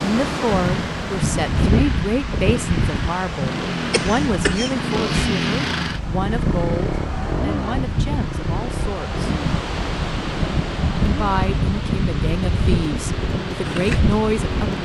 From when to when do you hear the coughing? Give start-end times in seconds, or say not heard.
3.9-4.8.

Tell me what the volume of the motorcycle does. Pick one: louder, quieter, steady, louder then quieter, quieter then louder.
louder then quieter.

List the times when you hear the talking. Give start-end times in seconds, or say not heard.
0.0-9.2, 11.1-14.8.